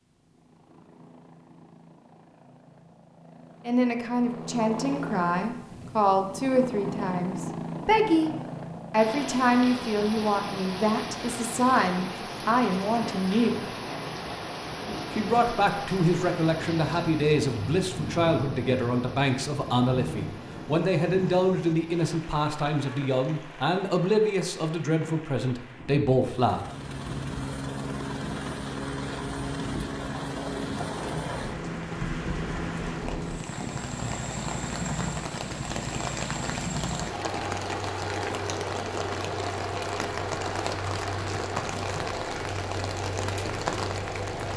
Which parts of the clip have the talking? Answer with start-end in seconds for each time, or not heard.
3.6-8.3, 8.9-13.7, 15.1-26.6.